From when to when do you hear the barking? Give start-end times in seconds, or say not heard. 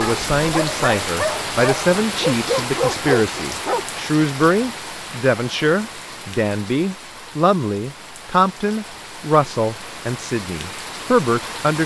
0.0-3.8.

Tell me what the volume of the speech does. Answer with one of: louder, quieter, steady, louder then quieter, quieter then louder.
steady.